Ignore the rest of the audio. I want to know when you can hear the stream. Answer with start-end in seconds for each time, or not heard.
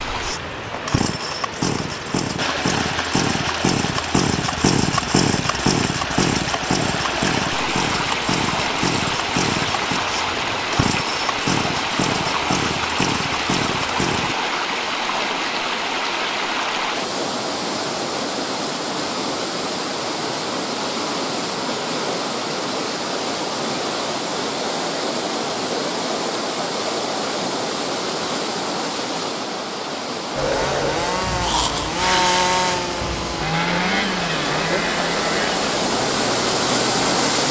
0.0-37.4.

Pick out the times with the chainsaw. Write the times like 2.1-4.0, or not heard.
0.0-14.3, 30.4-37.4.